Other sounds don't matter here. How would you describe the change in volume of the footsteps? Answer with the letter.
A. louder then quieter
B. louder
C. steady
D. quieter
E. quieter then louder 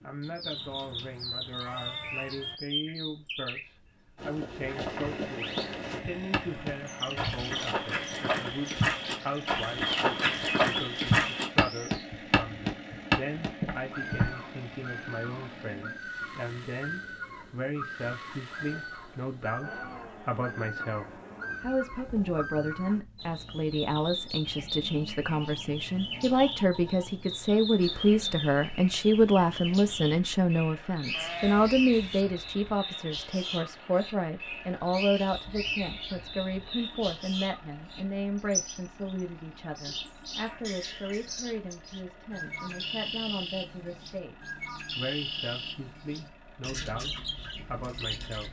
B.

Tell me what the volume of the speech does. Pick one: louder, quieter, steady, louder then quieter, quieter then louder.
louder then quieter.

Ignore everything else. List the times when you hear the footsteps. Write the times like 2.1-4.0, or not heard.
4.2-14.3.